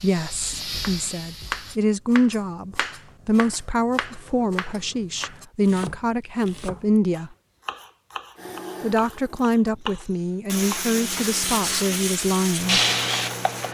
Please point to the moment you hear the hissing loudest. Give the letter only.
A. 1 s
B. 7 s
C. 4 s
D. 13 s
D.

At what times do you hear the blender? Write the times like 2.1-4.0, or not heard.
8.3-13.7.